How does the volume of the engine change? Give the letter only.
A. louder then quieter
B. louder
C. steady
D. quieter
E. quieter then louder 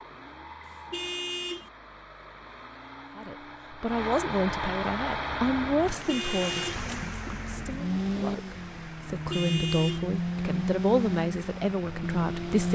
B.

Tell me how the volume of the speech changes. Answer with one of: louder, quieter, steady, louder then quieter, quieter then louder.
quieter then louder.